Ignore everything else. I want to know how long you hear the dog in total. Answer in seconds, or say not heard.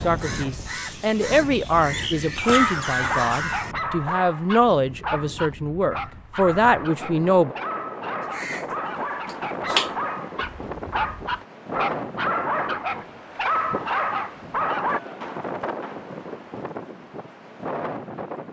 12 s.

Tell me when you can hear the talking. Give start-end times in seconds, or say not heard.
0.0-7.5.